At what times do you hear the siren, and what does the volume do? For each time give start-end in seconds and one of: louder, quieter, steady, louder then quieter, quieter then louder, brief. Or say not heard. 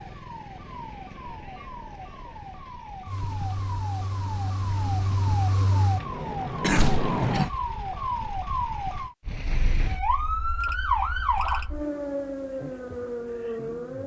0.0-14.0 louder.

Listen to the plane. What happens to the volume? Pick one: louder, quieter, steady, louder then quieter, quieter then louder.
louder.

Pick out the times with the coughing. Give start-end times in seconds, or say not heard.
6.6-7.5.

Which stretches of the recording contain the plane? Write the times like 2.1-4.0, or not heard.
3.0-7.5.